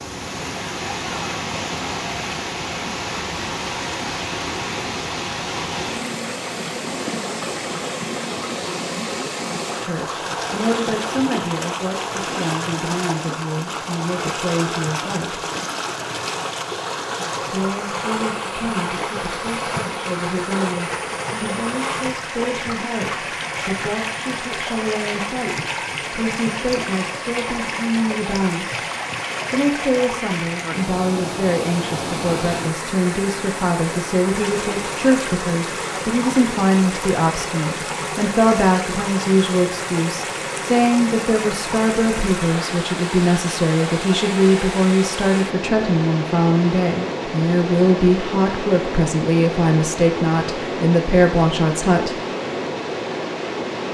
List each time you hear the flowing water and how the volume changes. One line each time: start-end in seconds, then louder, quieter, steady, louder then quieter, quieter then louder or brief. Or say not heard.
0.0-53.9 steady.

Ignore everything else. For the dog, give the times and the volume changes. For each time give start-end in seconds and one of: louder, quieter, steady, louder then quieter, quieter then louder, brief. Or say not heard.
not heard.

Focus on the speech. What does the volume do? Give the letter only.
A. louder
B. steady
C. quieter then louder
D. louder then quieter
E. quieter
A.